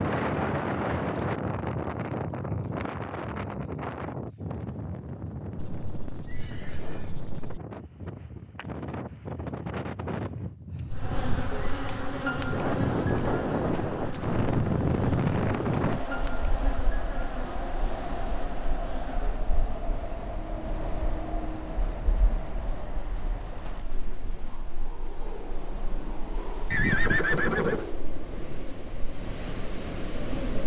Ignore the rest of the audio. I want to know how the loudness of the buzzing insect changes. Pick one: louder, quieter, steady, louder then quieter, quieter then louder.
quieter.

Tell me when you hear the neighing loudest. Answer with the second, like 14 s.
27 s.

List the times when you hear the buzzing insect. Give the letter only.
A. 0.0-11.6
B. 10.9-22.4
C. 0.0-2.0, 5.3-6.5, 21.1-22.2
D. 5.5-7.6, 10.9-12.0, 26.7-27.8
B.